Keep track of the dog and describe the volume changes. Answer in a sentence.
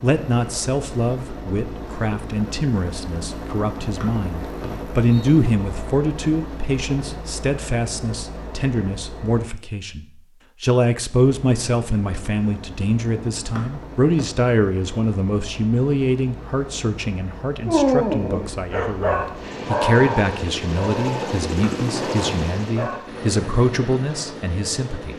The loudness of the dog goes down.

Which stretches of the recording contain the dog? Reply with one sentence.
You can hear the dog from 17.6 to 23.1 s.